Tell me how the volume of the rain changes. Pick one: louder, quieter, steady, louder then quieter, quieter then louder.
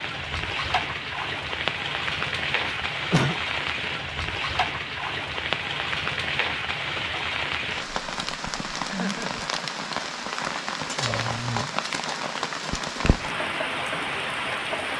steady.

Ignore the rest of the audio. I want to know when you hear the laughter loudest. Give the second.
3 s.